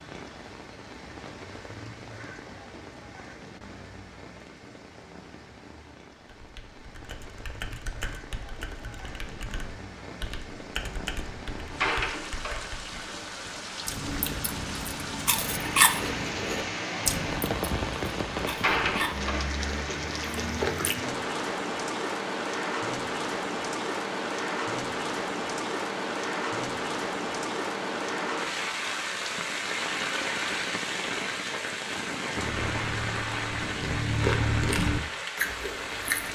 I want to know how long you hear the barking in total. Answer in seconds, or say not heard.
not heard.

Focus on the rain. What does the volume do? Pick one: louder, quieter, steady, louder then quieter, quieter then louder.
louder.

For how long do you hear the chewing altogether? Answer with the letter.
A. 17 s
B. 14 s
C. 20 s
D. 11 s
D.